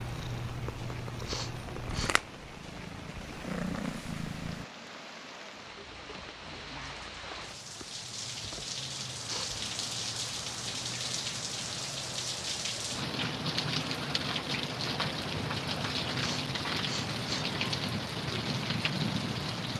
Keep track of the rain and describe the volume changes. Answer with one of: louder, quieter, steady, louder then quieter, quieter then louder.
louder.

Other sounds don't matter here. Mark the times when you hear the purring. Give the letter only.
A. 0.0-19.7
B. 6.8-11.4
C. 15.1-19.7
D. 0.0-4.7
D.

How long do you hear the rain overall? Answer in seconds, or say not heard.
20 s.